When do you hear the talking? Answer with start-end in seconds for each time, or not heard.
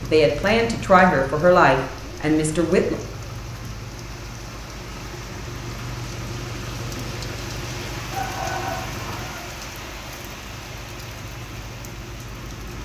0.0-3.0.